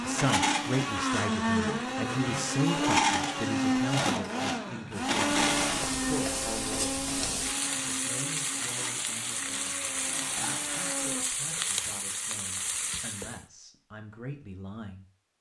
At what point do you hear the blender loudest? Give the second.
3 s.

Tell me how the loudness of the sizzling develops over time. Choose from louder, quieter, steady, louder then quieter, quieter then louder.
steady.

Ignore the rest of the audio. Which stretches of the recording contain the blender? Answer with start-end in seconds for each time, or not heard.
0.0-11.2.